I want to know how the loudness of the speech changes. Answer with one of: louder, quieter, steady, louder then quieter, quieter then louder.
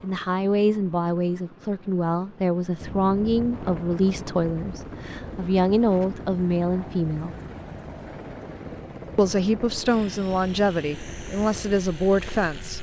steady.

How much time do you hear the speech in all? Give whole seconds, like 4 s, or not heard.
11 s.